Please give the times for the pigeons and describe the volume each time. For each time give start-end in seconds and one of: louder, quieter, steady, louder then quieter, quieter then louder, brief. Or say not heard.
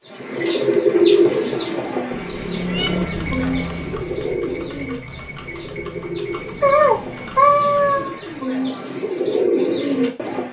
0.1-10.4 quieter then louder.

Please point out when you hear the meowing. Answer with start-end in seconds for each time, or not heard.
2.6-3.1, 6.6-8.2.